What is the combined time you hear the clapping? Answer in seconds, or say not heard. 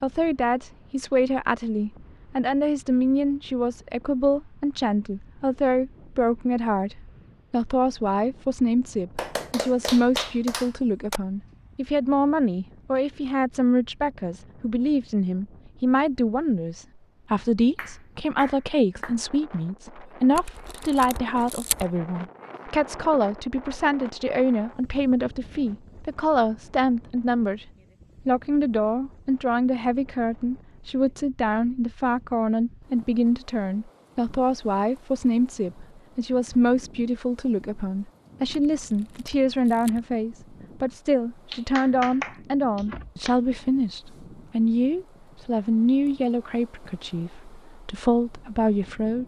5 s.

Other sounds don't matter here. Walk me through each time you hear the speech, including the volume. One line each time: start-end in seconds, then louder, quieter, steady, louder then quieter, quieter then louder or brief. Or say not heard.
0.0-27.6 steady
28.2-49.2 steady.